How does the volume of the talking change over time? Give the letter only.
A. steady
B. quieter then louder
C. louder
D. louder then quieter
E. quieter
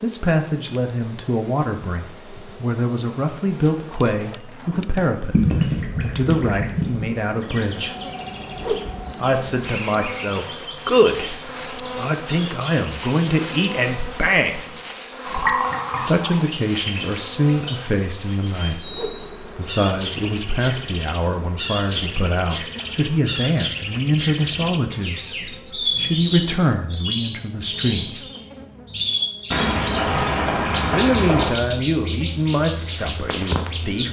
A.